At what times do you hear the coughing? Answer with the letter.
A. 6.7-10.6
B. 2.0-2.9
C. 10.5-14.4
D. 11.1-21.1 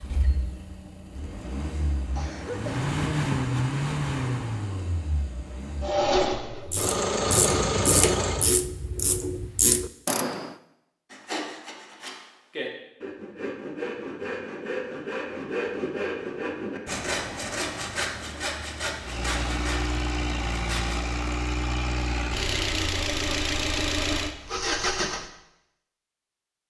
B.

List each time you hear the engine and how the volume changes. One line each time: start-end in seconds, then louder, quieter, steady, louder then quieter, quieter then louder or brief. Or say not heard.
0.0-8.5 louder
19.0-25.3 steady.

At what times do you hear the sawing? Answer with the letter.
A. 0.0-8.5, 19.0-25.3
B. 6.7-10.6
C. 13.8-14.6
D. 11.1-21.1
D.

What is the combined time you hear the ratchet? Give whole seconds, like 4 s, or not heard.
4 s.